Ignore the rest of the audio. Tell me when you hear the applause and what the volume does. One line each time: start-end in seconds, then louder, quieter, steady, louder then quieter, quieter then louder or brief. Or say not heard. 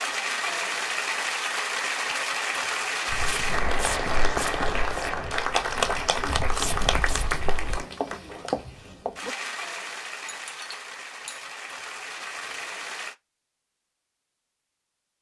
0.0-13.2 quieter.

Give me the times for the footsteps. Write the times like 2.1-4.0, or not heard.
3.1-7.8.